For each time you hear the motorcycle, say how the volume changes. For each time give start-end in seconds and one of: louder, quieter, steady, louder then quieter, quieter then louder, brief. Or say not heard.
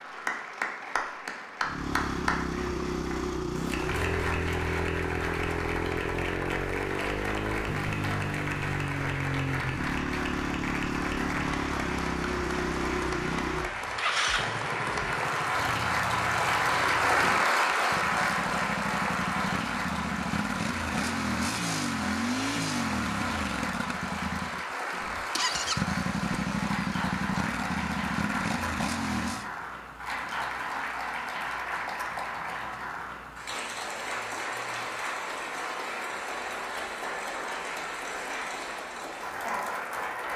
1.6-29.5 steady.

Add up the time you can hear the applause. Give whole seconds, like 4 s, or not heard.
40 s.